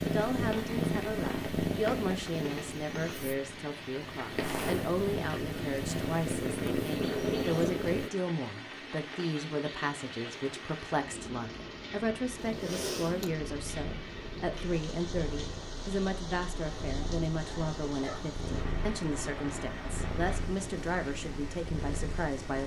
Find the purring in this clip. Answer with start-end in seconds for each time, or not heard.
0.0-8.1, 12.3-22.6.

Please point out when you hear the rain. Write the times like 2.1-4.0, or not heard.
0.0-22.6.